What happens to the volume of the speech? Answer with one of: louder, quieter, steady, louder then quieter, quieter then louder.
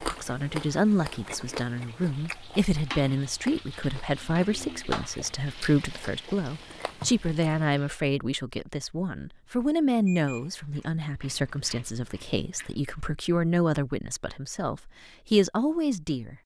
steady.